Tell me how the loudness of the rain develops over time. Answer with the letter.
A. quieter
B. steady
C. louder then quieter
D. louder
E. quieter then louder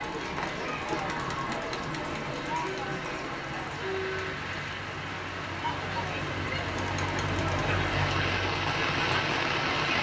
D.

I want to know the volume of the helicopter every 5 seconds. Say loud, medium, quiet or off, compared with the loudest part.
medium, loud.